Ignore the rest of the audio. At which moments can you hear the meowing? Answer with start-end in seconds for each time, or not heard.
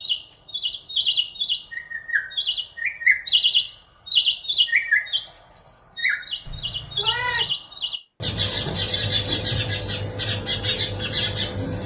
6.5-7.5.